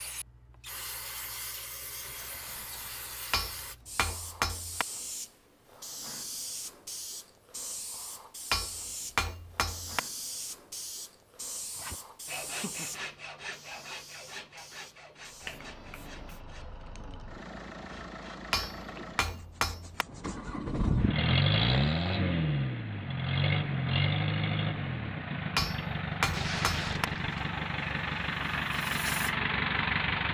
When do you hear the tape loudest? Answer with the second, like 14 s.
27 s.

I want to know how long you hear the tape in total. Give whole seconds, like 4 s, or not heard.
2 s.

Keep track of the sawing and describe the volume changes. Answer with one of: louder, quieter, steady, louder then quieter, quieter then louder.
quieter.